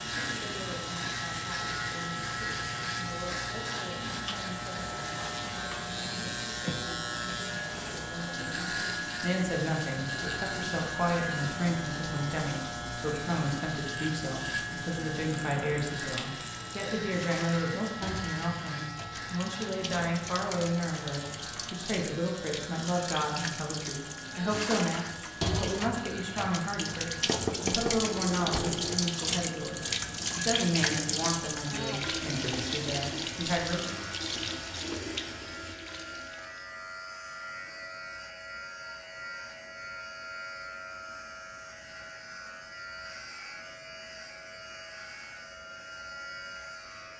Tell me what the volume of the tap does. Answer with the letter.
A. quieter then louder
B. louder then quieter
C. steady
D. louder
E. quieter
D.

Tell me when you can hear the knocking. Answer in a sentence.
The knocking can be heard from 27.2 to 28.9 s.